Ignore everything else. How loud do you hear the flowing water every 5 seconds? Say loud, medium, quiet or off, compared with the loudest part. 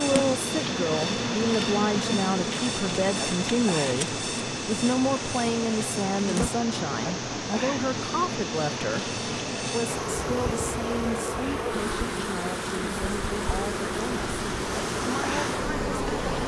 loud, loud, medium, loud.